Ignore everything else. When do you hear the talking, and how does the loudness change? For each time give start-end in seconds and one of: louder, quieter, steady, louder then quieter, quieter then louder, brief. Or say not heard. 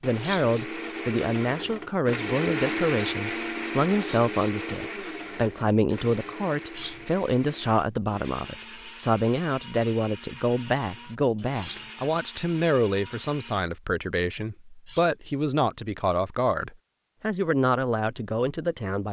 0.0-19.0 steady.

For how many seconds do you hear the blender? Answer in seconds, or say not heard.
14 s.